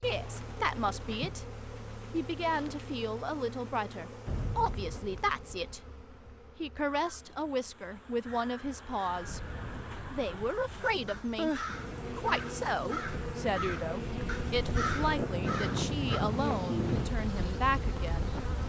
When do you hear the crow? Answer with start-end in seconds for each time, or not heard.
6.9-16.2.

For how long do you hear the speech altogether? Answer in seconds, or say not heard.
16 s.